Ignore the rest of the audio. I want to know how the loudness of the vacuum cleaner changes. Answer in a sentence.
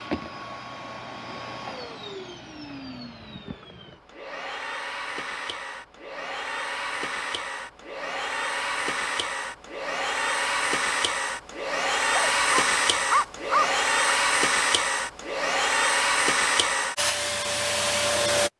The volume of the vacuum cleaner goes up.